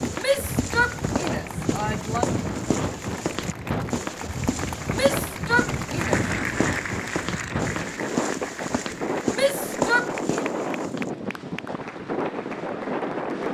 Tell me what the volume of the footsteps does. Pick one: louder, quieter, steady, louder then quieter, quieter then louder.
steady.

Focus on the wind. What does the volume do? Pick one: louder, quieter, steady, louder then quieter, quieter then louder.
steady.